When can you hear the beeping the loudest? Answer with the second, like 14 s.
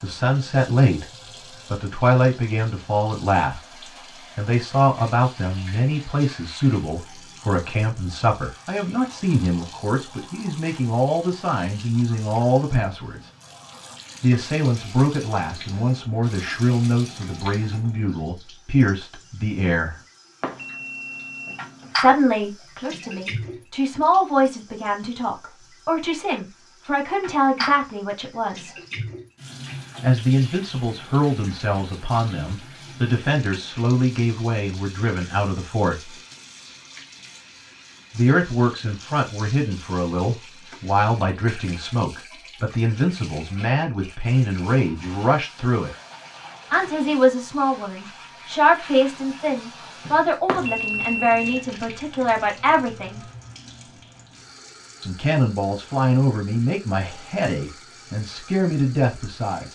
51 s.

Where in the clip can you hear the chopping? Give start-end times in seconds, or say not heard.
not heard.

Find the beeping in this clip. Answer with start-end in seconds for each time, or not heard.
20.4-21.9, 50.5-51.6.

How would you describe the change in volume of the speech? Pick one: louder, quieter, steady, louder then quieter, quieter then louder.
steady.